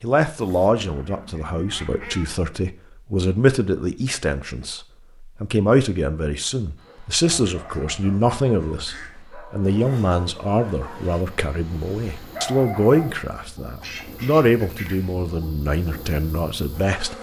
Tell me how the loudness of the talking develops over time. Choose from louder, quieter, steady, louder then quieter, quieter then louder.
steady.